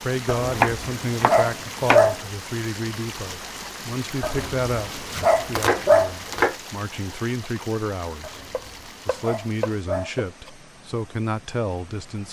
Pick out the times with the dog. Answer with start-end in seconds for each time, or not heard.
0.2-2.1, 4.2-6.2, 8.2-10.2.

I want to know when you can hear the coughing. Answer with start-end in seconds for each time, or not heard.
not heard.